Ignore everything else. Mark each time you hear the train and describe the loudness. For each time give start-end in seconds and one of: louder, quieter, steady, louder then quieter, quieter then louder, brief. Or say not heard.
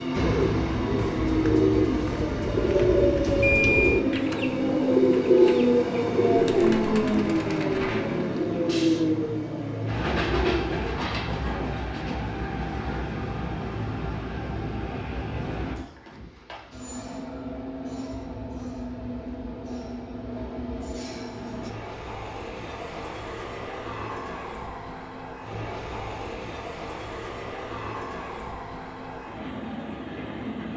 0.0-30.7 quieter.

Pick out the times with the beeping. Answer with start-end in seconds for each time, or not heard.
3.4-4.0.